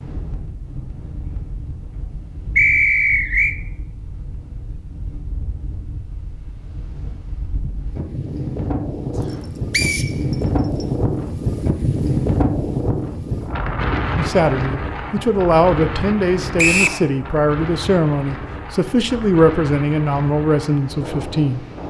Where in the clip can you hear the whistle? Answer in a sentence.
You can hear the whistle from 2.5 to 3.5 s, from 9.7 to 10.1 s and from 16.6 to 17.0 s.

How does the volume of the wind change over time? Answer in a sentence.
The volume of the wind goes up, then down.